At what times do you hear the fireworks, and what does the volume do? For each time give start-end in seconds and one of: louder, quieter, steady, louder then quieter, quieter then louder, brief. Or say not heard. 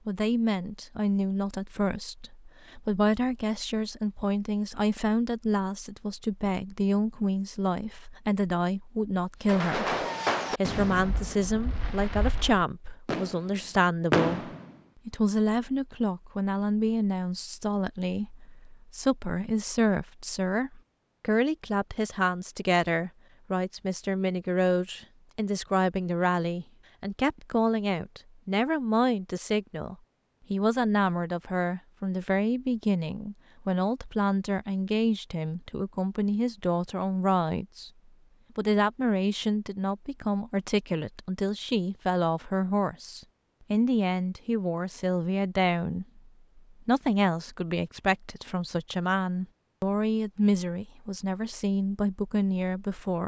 9.4-14.7 quieter then louder.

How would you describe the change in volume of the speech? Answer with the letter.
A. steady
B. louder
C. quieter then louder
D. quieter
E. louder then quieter
A.